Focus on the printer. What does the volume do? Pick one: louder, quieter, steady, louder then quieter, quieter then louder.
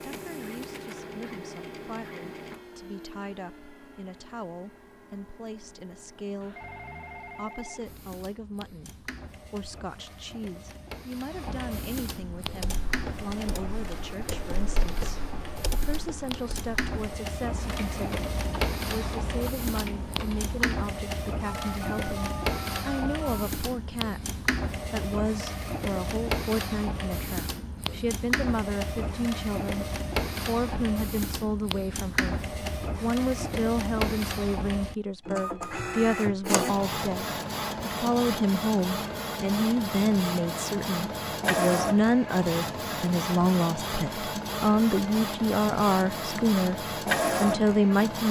louder.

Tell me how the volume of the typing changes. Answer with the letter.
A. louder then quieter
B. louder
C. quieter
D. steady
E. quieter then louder
D.